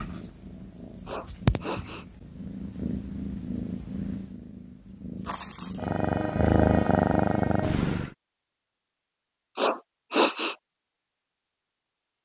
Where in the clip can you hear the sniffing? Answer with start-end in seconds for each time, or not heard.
1.1-2.0, 9.6-10.6.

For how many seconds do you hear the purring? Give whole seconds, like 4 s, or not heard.
8 s.